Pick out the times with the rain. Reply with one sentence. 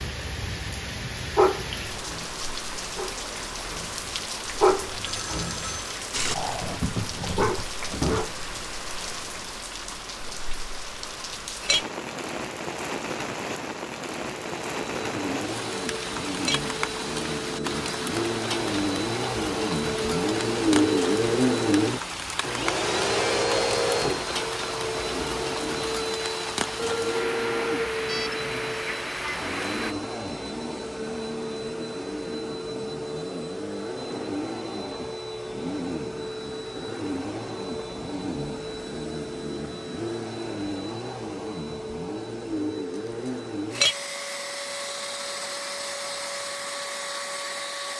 The rain can be heard from 0.0 to 29.9 s.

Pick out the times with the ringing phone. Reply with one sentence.
You can hear the ringing phone from 5.0 to 5.9 s and from 26.8 to 28.4 s.